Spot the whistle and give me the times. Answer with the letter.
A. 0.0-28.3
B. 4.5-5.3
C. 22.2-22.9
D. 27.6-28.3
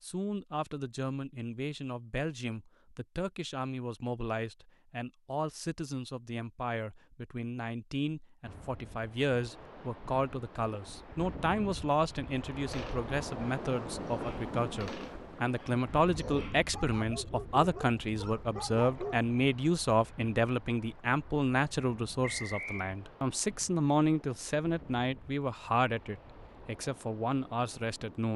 C.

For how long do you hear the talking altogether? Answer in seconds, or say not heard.
28 s.